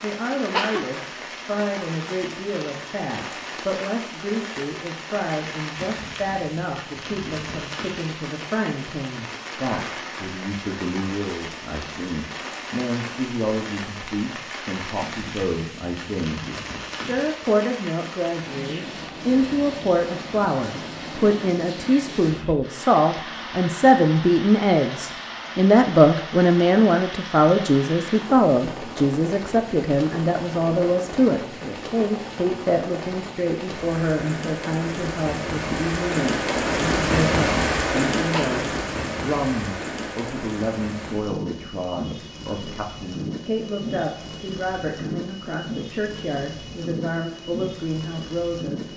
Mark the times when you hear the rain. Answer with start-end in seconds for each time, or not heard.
0.0-48.9.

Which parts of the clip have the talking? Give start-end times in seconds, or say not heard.
0.0-48.9.